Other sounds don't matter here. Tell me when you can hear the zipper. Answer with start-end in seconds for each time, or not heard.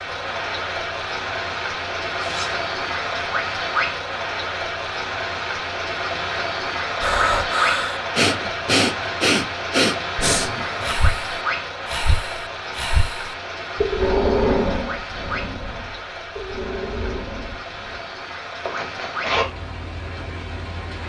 2.2-2.6, 10.4-11.1, 18.6-19.4.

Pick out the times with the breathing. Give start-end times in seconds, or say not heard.
7.0-18.1.